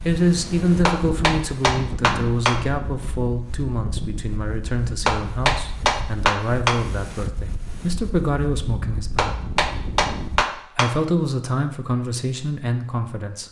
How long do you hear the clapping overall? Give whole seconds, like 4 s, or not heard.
5 s.